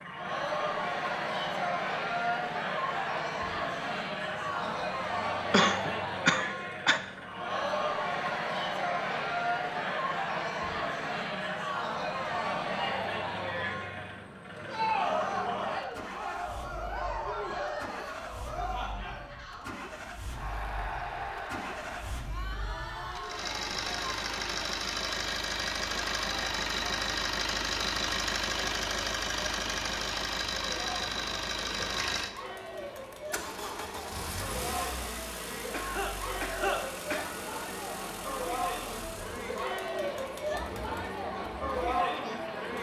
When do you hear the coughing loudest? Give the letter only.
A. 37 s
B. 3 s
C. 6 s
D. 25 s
C.